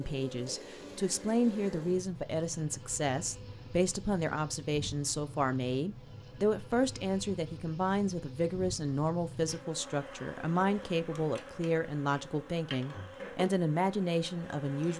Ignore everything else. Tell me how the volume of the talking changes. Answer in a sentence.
The loudness of the talking stays about the same.